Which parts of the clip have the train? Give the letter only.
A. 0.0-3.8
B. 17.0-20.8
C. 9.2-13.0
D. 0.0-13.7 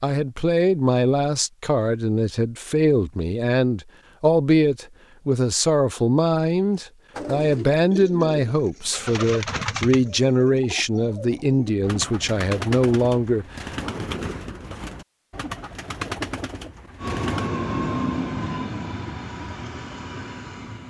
B.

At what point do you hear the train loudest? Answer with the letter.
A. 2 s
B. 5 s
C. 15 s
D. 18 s
D.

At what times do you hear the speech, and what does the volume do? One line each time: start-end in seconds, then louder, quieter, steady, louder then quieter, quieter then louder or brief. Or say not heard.
0.0-13.7 steady.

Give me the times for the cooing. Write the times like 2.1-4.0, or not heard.
7.1-17.5.